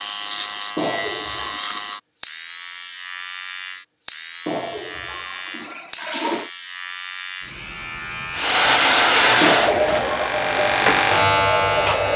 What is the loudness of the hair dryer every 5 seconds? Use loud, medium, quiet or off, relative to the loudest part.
off, loud, medium.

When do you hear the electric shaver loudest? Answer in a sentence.
The volume of the electric shaver peaks at 11 seconds.